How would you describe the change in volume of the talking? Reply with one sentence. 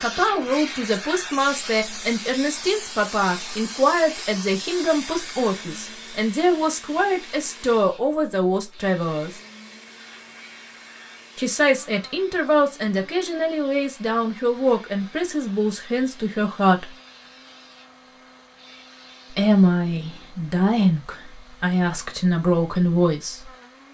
The volume of the talking stays about the same.